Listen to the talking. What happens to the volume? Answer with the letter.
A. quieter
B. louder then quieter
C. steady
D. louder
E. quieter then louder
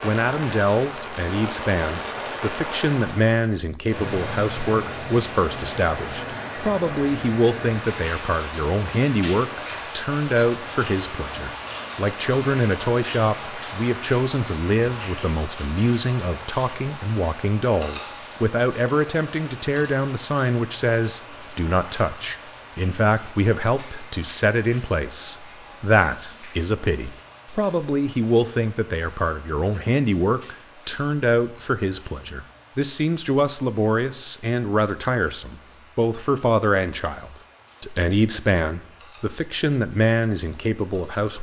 C.